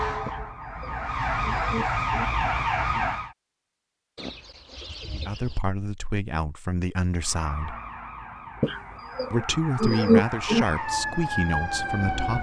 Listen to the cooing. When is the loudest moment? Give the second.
10 s.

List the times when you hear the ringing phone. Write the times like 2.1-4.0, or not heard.
not heard.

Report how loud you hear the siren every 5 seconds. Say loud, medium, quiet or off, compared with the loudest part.
loud, medium, loud.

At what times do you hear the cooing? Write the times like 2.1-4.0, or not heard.
0.2-2.2, 4.2-5.6, 8.6-10.7.